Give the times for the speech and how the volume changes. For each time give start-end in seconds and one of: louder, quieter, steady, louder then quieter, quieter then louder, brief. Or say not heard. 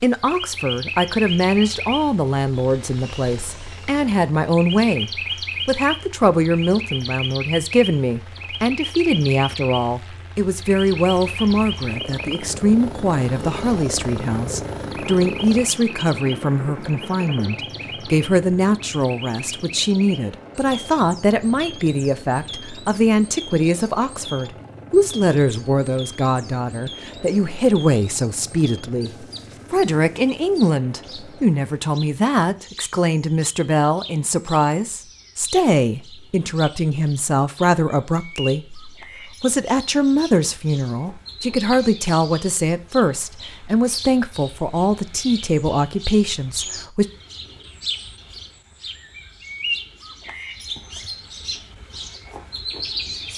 0.0-47.0 steady.